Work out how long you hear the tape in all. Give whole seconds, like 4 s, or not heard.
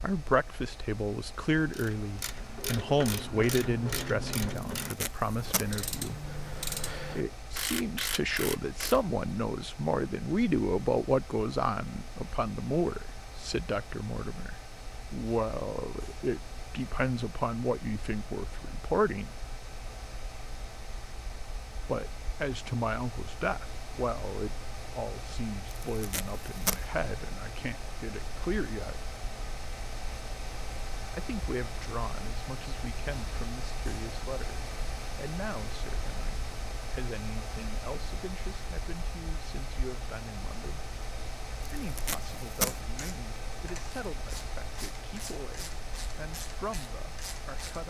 3 s.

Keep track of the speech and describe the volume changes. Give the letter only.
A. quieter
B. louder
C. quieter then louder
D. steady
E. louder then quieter
A.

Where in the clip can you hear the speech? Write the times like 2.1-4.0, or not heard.
0.0-6.2, 7.2-19.4, 21.9-29.0, 31.1-40.9, 41.5-47.8.